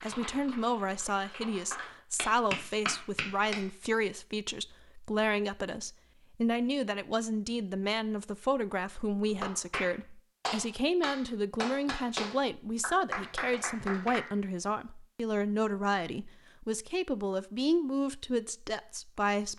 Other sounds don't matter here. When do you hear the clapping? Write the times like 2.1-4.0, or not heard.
0.0-3.6, 9.2-14.2.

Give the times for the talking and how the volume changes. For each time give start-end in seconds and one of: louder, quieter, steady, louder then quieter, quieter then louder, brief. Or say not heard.
0.0-19.5 steady.